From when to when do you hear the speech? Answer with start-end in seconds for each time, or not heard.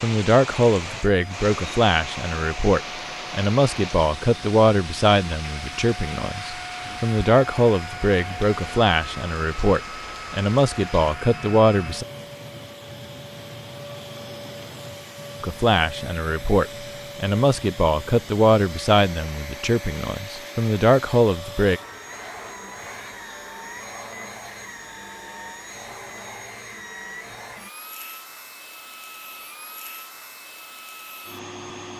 0.0-12.1, 15.4-21.8.